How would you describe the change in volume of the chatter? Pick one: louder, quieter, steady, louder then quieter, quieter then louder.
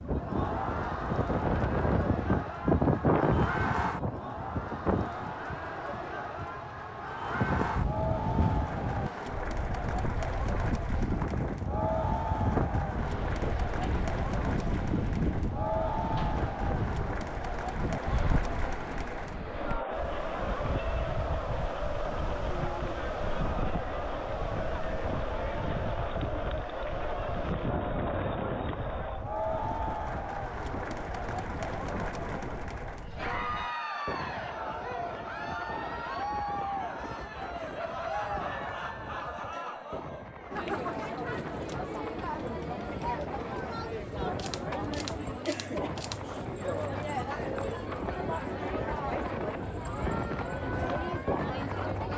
steady.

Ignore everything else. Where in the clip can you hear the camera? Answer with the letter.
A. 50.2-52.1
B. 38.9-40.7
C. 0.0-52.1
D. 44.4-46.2
D.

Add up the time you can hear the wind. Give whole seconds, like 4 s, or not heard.
52 s.